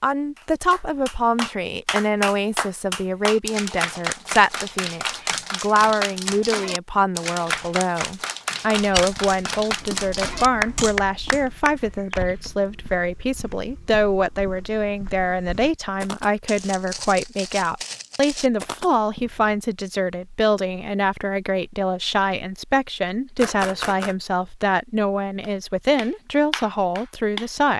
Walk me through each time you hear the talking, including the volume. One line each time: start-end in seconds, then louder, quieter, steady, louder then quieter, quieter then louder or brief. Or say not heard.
0.0-27.7 steady.